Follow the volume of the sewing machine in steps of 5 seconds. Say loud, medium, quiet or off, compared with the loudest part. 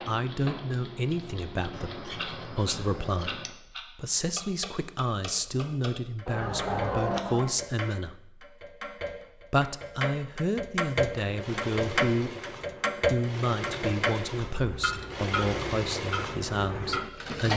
off, off, medium, loud.